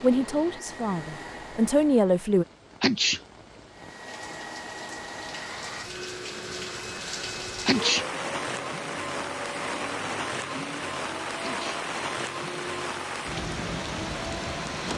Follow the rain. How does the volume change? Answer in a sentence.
The loudness of the rain goes up.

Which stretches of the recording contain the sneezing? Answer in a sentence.
You can hear the sneezing from 2.8 to 3.2 s, from 7.7 to 8.1 s and from 11.4 to 11.8 s.